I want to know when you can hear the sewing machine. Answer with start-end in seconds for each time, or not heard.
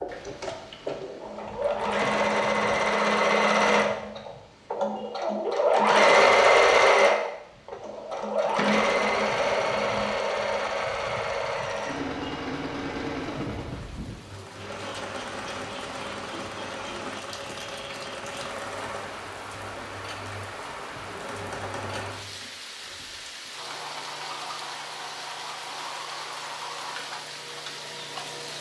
0.0-28.5.